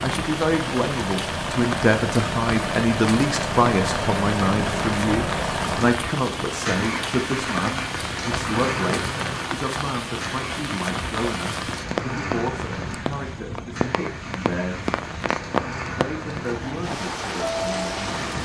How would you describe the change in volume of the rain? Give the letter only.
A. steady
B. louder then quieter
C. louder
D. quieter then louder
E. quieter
A.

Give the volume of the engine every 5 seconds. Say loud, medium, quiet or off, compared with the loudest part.
loud, loud, medium, medium.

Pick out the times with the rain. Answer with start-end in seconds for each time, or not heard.
0.0-18.3.